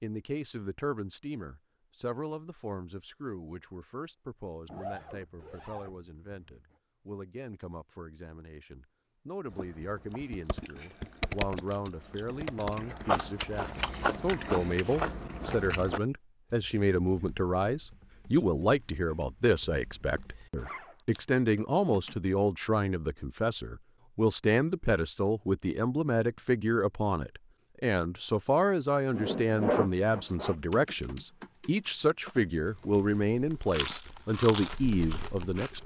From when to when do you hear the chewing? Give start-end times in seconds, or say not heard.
9.4-16.0, 33.6-35.8.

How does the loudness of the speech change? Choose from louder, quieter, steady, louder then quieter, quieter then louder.
louder.